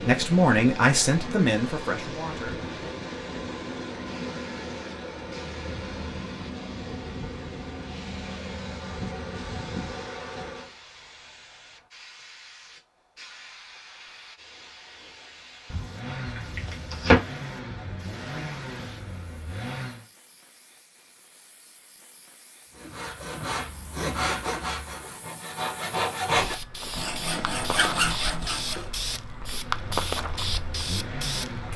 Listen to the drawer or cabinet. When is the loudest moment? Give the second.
17 s.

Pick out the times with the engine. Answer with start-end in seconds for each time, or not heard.
0.0-10.8, 15.8-20.1, 29.6-31.7.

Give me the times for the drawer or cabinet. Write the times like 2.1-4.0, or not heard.
15.7-17.2.